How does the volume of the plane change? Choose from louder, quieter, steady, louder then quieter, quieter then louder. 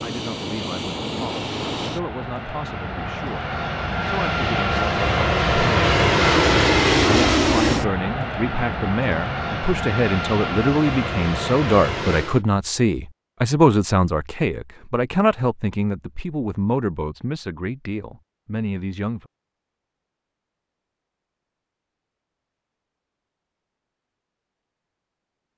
louder then quieter.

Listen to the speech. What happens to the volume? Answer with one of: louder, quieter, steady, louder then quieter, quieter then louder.
louder then quieter.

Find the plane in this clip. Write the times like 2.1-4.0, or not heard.
0.0-12.4.